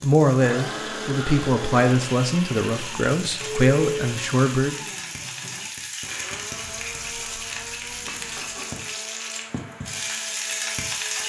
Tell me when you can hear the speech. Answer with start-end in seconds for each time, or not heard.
0.0-4.8.